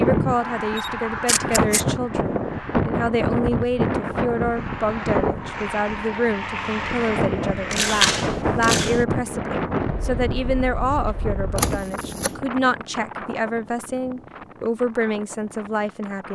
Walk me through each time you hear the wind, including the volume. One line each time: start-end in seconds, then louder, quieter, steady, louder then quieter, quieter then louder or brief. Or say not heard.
0.0-16.3 quieter.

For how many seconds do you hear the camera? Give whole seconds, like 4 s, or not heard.
3 s.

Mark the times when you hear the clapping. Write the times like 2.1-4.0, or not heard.
not heard.